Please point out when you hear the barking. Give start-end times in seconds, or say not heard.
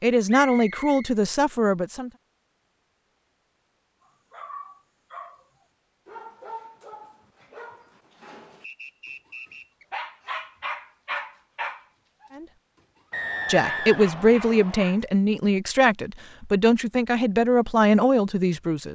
4.0-5.5, 6.0-8.7, 9.4-12.3, 13.6-15.1.